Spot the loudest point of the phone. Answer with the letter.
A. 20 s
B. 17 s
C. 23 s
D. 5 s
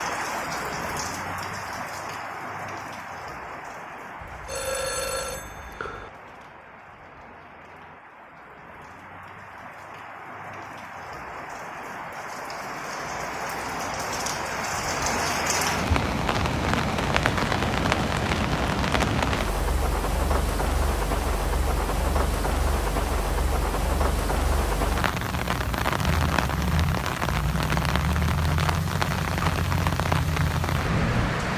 D.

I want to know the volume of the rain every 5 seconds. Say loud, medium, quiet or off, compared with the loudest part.
medium, quiet, medium, loud, loud, loud, loud.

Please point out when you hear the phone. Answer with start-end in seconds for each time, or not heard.
4.2-6.1.